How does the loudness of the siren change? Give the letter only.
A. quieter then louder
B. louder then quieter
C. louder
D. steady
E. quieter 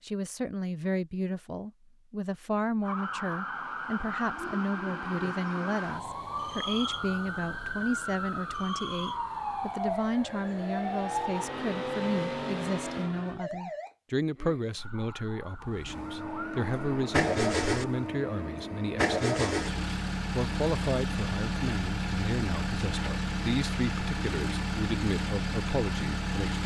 E.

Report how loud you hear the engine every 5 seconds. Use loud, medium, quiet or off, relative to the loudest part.
off, off, medium, loud, loud, loud.